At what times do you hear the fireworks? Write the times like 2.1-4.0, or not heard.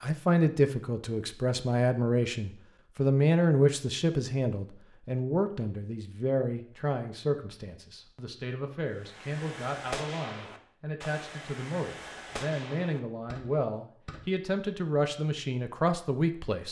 8.9-14.3.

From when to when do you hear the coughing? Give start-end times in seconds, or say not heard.
not heard.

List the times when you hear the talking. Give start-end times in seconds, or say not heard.
0.0-16.6.